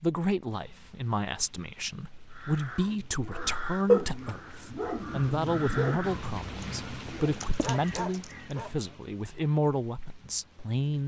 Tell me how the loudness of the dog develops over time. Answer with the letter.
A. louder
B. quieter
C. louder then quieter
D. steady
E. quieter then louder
E.